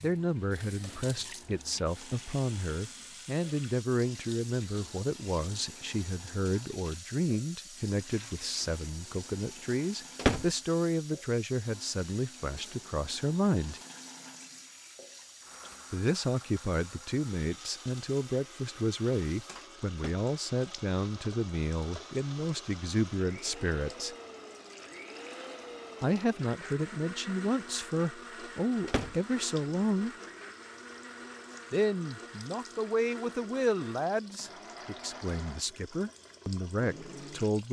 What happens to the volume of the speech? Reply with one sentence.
The volume of the speech stays about the same.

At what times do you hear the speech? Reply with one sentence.
The speech can be heard from 0.0 to 13.8 s, from 15.9 to 24.1 s, from 26.0 to 30.1 s and from 31.7 to 37.6 s.